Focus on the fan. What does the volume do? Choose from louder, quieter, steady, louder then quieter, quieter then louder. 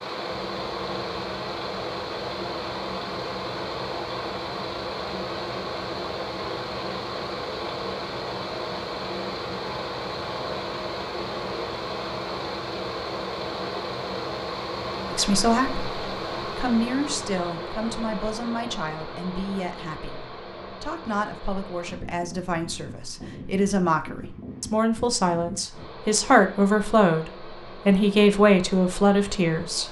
quieter.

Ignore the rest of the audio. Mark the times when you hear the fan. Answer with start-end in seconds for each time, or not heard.
0.0-29.8.